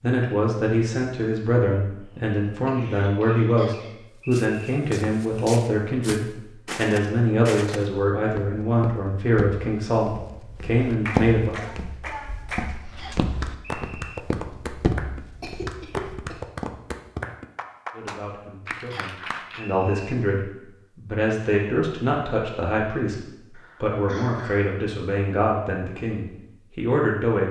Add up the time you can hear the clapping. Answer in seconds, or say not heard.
9 s.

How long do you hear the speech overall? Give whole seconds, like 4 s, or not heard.
21 s.